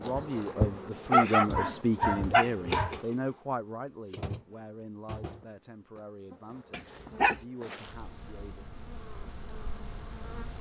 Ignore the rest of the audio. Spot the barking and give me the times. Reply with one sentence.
The barking can be heard from 1.1 to 3.0 s and from 6.7 to 7.4 s.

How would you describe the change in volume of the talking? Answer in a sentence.
The volume of the talking goes down.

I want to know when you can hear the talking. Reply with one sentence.
The talking can be heard from 0.0 to 8.7 s.